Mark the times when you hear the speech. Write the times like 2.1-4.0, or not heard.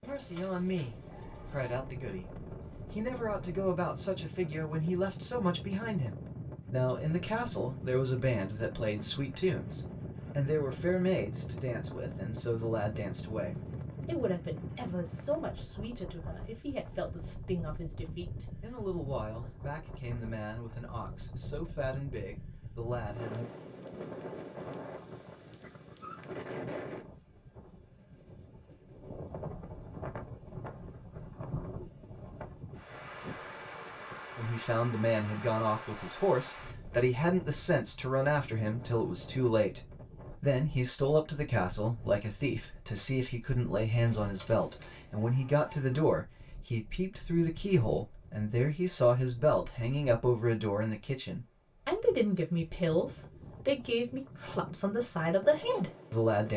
0.0-23.5, 34.4-56.5.